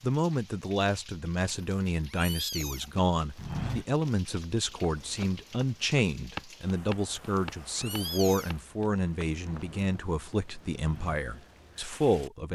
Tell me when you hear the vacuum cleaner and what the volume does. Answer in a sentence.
You can't hear the vacuum cleaner here.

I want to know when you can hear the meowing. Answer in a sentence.
The meowing can be heard from 1.4 to 3.0 s and from 7.2 to 8.6 s.